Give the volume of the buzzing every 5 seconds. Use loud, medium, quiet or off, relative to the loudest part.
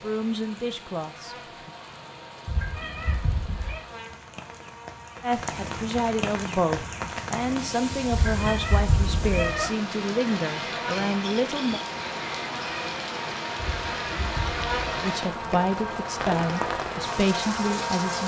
quiet, medium, loud, loud.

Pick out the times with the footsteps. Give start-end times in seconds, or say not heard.
not heard.